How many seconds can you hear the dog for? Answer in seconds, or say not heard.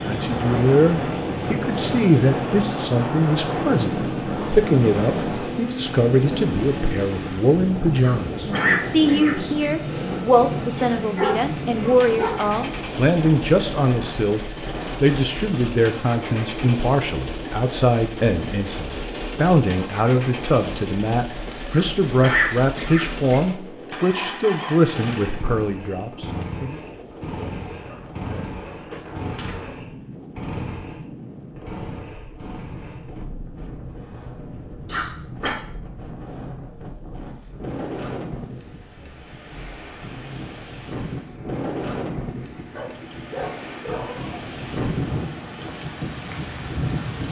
5 s.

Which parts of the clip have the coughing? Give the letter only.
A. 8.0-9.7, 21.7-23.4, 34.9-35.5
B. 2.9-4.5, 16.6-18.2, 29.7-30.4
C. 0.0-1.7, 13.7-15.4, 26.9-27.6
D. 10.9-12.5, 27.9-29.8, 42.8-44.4
A.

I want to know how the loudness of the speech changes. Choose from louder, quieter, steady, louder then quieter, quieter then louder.
steady.